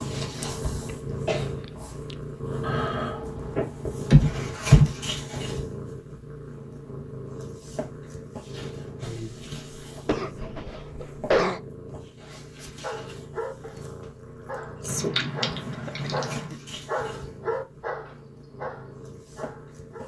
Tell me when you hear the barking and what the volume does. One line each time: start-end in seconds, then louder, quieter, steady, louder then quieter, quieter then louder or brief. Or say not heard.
12.8-20.0 louder then quieter.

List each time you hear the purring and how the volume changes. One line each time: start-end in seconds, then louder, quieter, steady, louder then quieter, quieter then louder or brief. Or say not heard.
0.0-20.0 quieter.